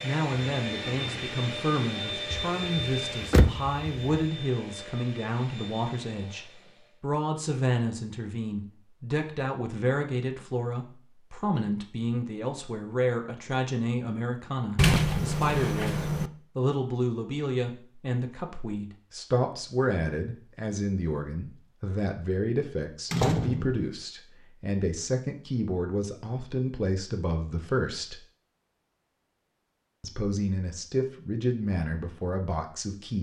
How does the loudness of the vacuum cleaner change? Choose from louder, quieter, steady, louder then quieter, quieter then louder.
quieter.